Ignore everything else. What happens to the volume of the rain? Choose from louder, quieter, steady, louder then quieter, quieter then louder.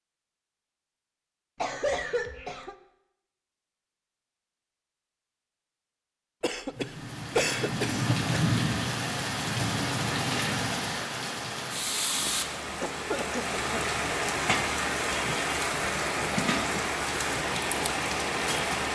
steady.